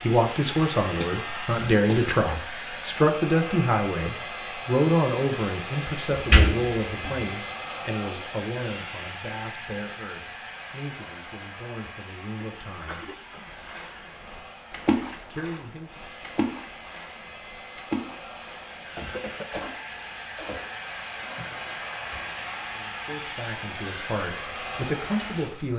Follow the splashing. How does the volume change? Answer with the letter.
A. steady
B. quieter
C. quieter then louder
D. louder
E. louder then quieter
B.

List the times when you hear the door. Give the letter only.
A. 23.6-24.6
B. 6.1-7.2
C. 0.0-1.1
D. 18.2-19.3
B.